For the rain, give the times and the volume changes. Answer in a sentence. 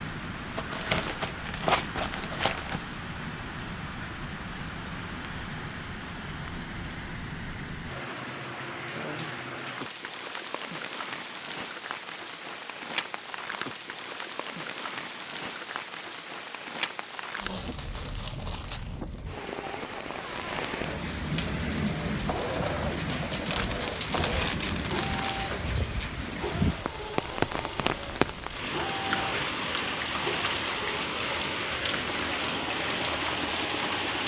You can hear the rain from 0.0 to 34.2 s, getting louder.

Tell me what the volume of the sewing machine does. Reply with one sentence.
The volume of the sewing machine stays about the same.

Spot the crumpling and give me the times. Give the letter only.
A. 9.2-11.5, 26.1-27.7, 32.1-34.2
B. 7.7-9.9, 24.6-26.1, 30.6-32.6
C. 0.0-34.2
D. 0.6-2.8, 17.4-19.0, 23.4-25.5
D.